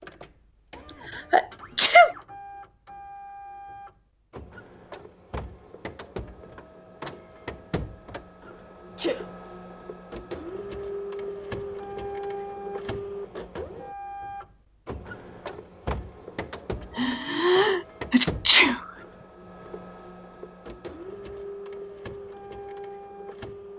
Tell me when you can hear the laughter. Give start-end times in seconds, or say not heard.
not heard.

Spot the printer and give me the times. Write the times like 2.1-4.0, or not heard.
0.0-23.7.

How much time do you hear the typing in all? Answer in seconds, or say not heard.
not heard.